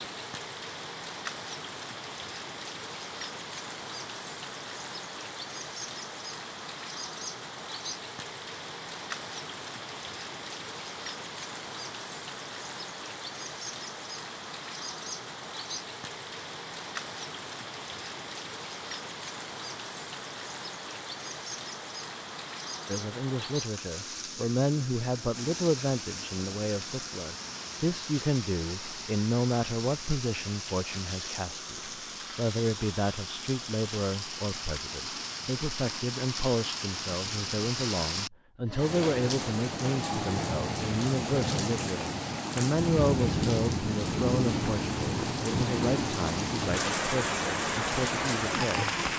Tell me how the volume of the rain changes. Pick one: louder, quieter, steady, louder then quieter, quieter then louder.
louder.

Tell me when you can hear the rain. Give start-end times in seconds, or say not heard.
0.0-49.1.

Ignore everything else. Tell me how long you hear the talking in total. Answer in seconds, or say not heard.
26 s.